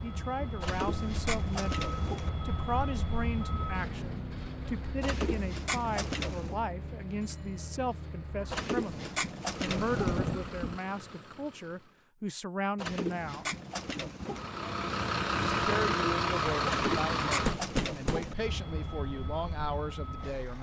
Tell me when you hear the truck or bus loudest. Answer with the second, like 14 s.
16 s.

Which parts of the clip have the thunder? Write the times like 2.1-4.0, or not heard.
9.8-10.8.